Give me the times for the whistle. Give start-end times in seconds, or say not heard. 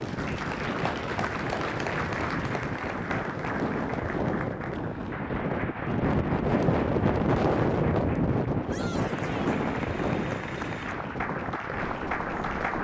not heard.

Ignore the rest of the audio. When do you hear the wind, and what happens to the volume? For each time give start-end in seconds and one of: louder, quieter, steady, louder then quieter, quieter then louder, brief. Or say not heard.
0.0-12.7 louder then quieter.